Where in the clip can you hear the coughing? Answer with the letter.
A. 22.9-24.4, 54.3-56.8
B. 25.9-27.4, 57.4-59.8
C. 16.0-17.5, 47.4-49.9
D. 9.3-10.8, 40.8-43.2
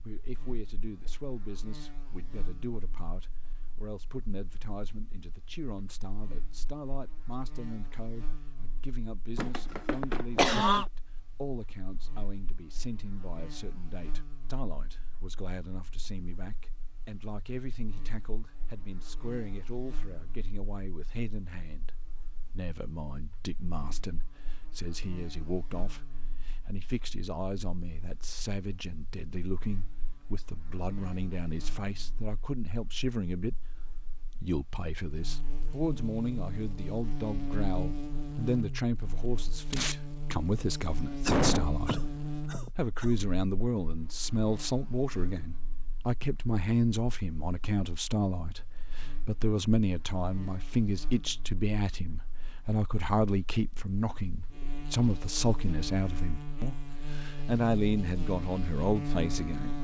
D.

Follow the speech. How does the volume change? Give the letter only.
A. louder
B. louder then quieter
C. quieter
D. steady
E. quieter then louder
A.